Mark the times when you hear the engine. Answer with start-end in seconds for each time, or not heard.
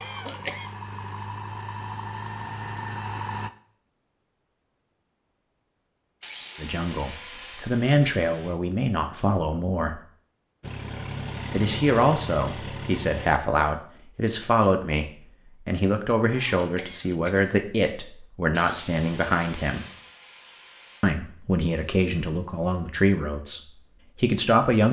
0.0-3.5, 10.6-13.4.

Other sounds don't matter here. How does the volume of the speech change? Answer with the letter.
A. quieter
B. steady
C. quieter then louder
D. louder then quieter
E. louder
B.